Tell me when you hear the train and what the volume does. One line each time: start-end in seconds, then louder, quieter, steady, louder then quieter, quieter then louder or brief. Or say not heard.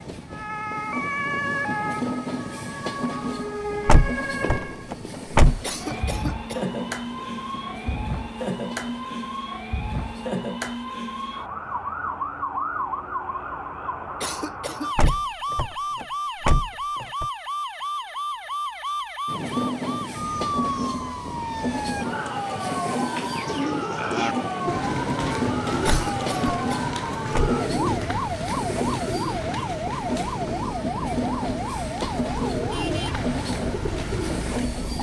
0.0-10.4 quieter
19.2-34.9 steady.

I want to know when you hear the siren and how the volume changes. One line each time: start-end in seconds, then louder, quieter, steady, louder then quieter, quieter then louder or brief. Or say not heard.
0.1-34.9 steady.